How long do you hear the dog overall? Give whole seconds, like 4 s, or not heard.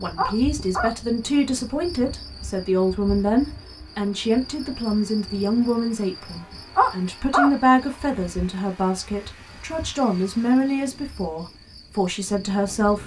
3 s.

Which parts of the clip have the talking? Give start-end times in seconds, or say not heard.
0.0-13.0.